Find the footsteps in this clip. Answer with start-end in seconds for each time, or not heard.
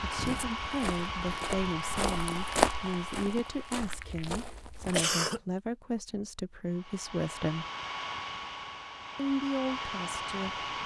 0.1-5.0.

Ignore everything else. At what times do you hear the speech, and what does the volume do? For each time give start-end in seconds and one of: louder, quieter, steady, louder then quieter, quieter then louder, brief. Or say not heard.
0.0-7.7 steady
9.2-10.6 brief.